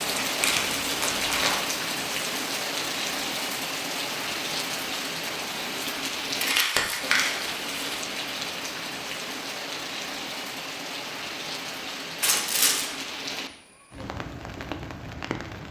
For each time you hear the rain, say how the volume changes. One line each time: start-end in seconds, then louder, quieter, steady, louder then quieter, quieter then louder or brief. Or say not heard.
0.0-15.6 quieter.